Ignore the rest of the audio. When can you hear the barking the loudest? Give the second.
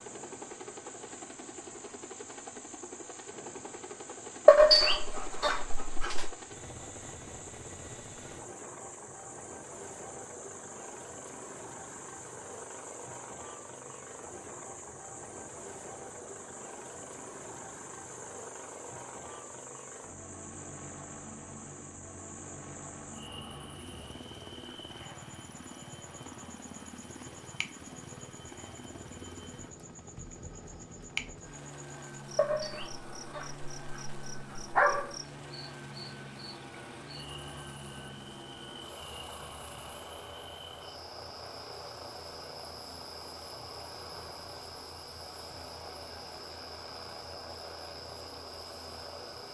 5 s.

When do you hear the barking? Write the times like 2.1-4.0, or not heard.
4.5-6.3, 32.4-35.1.